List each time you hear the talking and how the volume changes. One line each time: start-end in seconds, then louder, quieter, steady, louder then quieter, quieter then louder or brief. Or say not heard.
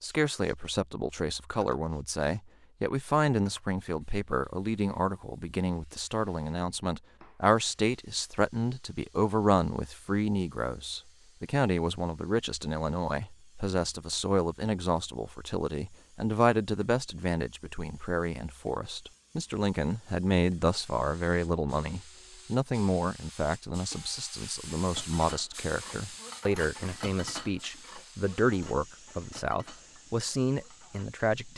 0.0-31.5 steady.